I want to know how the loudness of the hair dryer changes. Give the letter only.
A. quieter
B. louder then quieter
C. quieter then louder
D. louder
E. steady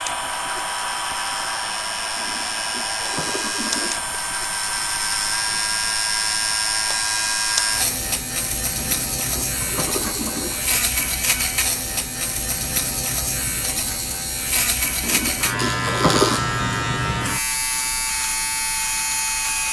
A.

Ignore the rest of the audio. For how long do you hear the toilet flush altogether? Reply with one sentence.
You can hear the toilet flush for 5 seconds altogether.